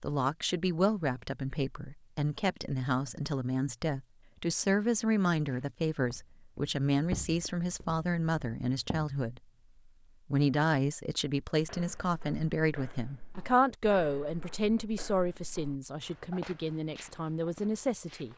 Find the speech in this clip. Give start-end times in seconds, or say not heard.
0.0-9.4, 10.3-18.3.